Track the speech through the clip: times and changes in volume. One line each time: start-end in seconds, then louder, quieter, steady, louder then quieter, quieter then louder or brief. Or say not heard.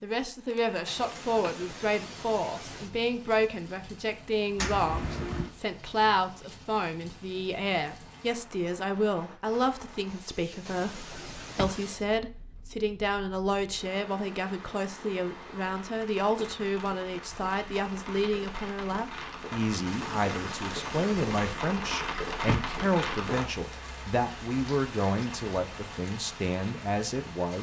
0.0-27.5 steady.